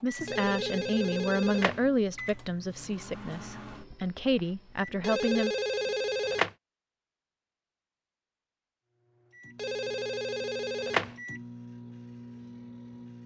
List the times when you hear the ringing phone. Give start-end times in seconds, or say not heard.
0.2-1.8, 5.0-6.5, 9.6-11.2.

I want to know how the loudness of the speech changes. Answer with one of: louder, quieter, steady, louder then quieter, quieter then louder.
quieter then louder.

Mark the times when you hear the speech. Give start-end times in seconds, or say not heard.
0.0-5.5.